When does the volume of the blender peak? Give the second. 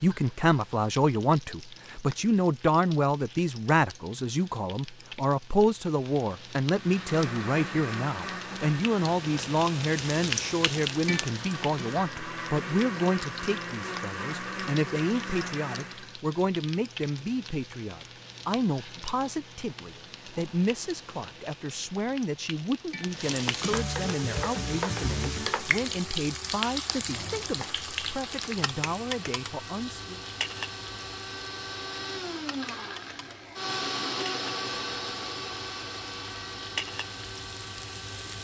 34 s.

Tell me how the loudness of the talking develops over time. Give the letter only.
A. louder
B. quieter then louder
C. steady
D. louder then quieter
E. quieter
E.